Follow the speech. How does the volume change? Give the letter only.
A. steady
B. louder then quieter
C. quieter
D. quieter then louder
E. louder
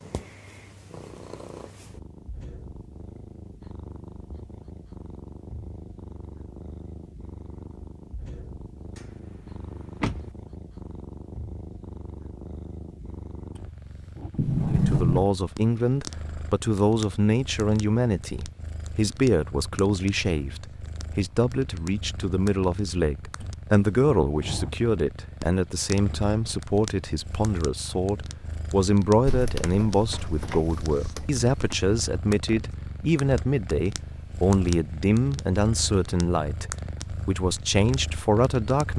A.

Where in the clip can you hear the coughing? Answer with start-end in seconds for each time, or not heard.
not heard.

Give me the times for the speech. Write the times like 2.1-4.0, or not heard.
14.7-38.9.